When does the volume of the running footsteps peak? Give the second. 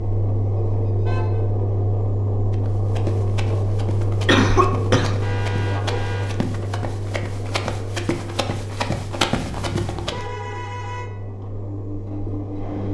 9 s.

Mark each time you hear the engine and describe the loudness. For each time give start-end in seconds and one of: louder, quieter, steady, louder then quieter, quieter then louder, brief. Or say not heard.
0.0-12.8 quieter.